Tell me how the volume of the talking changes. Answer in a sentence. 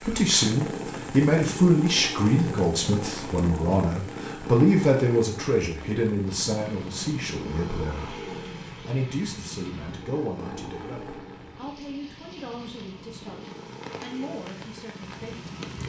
The loudness of the talking goes down.